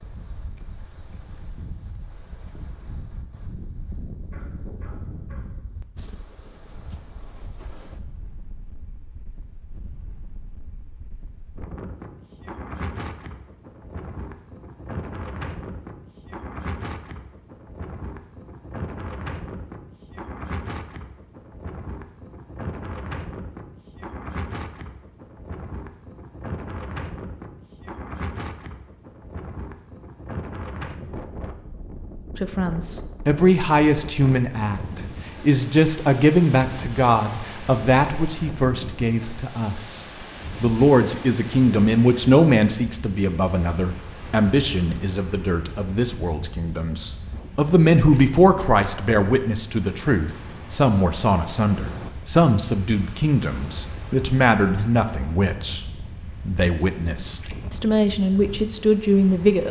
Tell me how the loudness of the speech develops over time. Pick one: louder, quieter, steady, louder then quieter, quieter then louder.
steady.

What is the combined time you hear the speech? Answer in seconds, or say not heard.
27 s.